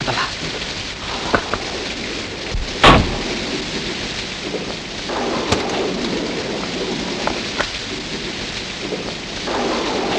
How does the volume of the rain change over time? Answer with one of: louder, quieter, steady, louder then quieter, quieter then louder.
steady.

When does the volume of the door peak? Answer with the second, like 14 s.
3 s.